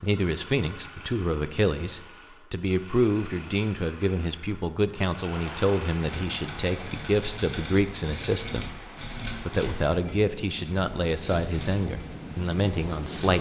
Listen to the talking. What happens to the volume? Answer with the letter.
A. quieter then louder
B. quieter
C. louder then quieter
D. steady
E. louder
D.